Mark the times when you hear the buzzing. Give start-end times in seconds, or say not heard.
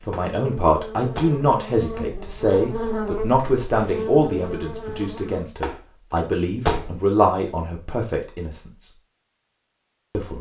0.0-5.5.